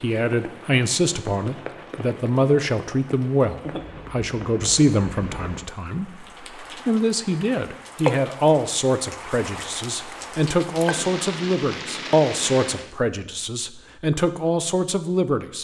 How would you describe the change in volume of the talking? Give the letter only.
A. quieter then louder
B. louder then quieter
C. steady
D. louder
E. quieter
C.